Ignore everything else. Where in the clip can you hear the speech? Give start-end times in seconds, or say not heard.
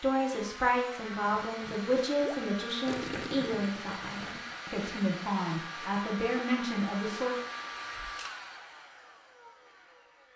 0.0-7.3.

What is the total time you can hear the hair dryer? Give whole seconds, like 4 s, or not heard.
10 s.